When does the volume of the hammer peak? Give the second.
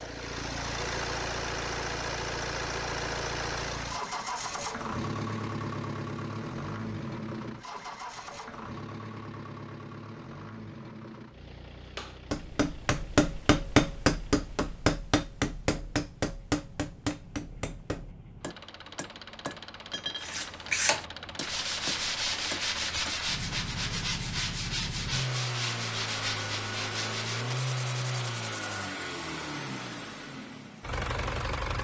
14 s.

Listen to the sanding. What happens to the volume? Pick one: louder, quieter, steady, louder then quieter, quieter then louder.
quieter.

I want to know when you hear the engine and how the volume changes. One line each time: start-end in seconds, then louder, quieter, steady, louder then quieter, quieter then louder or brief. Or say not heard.
0.0-31.7 quieter then louder.